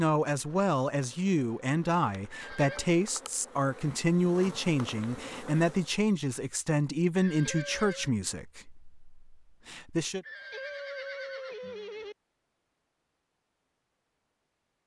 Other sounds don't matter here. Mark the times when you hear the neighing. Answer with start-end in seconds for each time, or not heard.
2.3-2.9, 7.2-8.1, 10.2-12.2.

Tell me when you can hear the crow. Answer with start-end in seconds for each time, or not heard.
not heard.